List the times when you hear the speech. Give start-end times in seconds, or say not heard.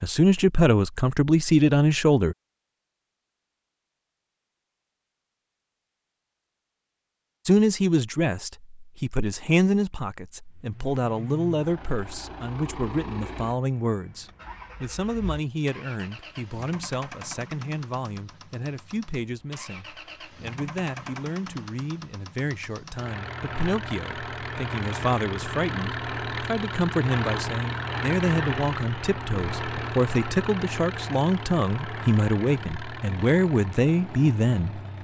0.0-2.4, 7.5-34.8.